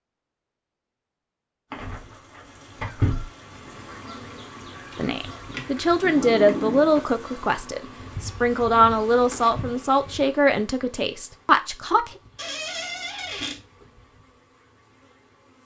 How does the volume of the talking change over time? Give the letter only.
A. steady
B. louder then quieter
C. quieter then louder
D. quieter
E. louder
A.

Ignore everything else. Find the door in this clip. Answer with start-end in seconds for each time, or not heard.
1.7-3.2, 6.0-7.0, 12.3-13.6.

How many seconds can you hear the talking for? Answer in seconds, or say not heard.
7 s.